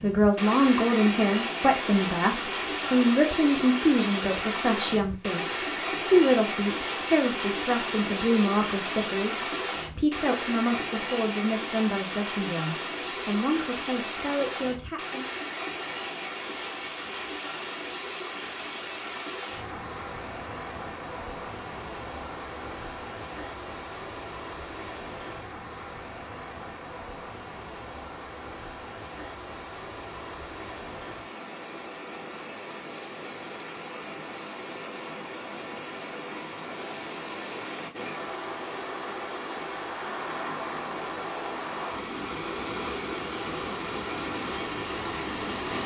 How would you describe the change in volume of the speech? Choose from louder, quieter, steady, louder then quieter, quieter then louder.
quieter.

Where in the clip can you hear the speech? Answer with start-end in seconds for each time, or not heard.
0.0-15.3.